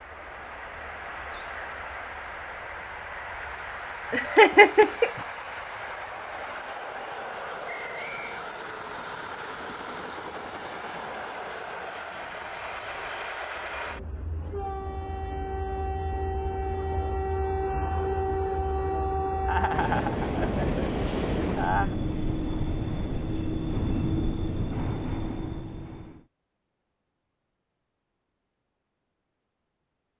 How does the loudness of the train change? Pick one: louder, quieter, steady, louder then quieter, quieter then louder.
louder.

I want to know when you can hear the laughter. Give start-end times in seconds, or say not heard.
4.1-5.2, 19.4-21.9.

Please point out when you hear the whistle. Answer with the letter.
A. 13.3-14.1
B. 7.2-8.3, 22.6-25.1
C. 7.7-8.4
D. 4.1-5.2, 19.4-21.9
C.